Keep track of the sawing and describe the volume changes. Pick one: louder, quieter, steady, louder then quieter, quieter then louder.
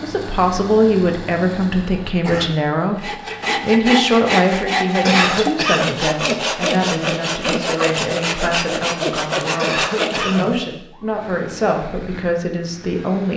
steady.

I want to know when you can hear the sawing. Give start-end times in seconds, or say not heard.
3.0-10.6.